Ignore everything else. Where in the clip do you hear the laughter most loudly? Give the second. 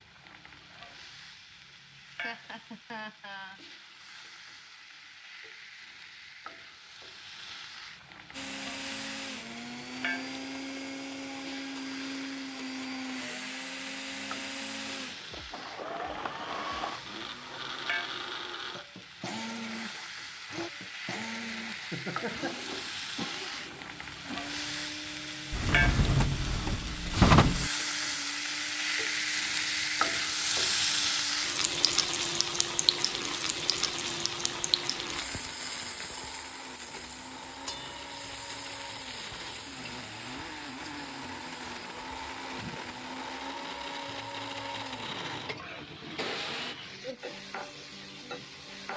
22 s.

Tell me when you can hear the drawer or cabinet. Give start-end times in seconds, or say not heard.
25.5-27.7.